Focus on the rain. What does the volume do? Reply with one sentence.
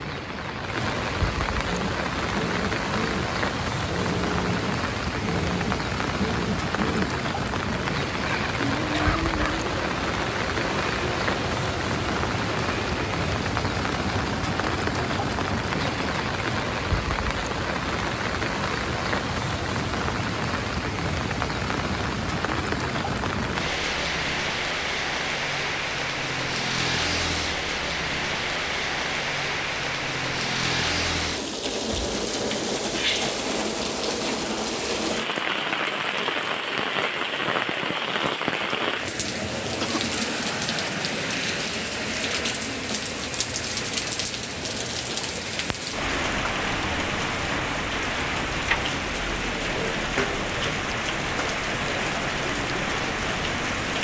The loudness of the rain stays about the same.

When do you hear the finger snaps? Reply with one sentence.
You can't hear the finger snaps here.